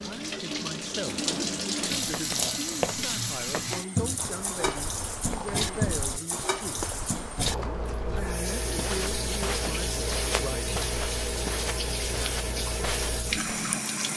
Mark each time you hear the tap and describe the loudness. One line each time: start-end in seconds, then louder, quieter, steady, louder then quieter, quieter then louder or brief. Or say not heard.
0.0-14.1 steady.